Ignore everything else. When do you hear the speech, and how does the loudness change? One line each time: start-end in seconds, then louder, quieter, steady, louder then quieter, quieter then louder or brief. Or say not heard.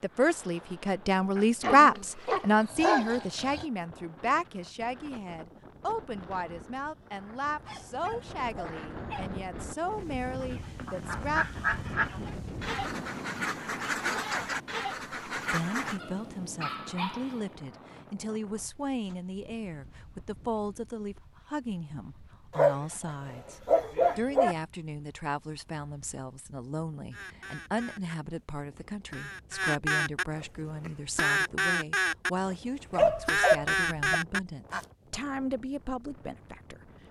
0.0-11.4 quieter
15.3-36.9 steady.